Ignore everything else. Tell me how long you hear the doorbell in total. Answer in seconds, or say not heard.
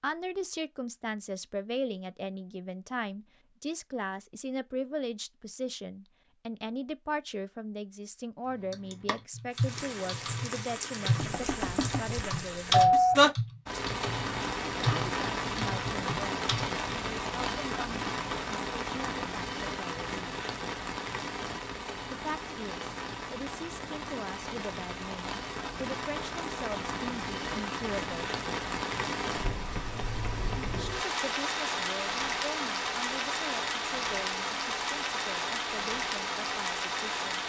2 s.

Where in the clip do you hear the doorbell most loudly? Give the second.
13 s.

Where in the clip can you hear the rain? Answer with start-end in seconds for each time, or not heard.
9.5-37.4.